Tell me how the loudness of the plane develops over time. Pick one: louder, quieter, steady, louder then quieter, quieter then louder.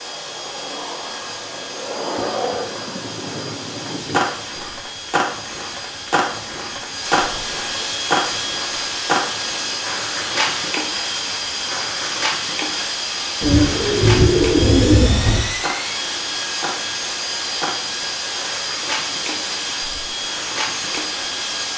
louder.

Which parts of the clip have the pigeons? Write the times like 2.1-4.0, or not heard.
13.4-15.4.